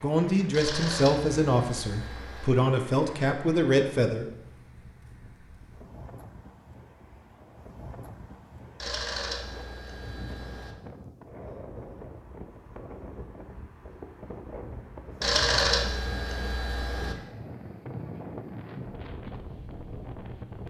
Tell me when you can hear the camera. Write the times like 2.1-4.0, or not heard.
0.5-2.5, 8.8-10.8, 15.2-17.1.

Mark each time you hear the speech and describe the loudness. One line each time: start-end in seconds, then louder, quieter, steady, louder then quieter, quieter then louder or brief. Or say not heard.
0.0-4.3 quieter then louder.